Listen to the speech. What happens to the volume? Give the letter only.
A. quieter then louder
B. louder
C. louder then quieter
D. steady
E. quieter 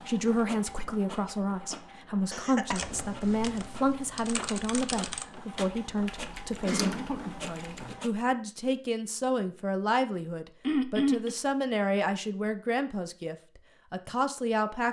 D.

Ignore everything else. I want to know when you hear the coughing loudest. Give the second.
11 s.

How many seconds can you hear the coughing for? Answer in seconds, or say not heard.
3 s.